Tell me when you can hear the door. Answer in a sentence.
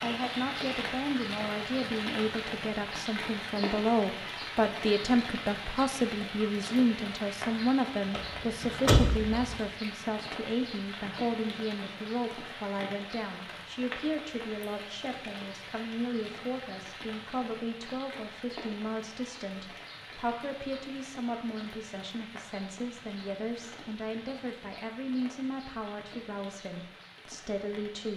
You can hear the door from 8.2 to 9.6 s.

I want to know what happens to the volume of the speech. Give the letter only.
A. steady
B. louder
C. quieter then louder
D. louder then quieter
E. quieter
E.